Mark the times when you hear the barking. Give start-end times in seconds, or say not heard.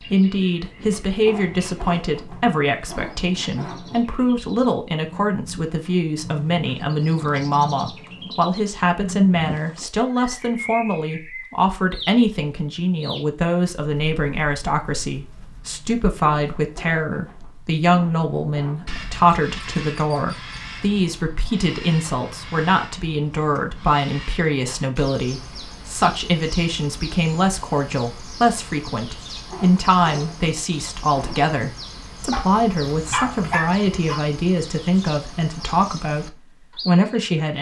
32.3-34.2.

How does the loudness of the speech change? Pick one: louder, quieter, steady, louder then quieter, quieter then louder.
steady.